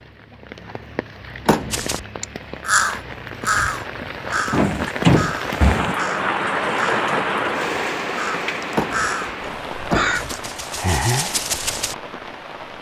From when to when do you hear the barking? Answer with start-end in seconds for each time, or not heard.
not heard.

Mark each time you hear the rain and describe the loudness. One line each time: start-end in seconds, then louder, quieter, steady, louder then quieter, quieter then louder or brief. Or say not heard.
0.0-12.7 louder then quieter.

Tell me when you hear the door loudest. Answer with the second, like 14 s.
5 s.